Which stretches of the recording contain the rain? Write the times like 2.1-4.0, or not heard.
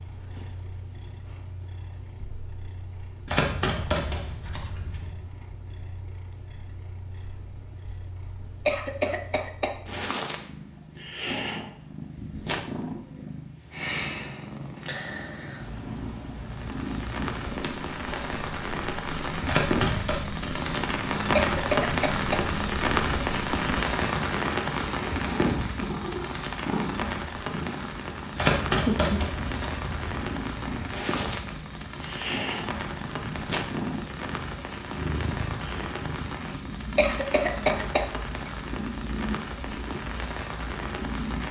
16.4-41.4.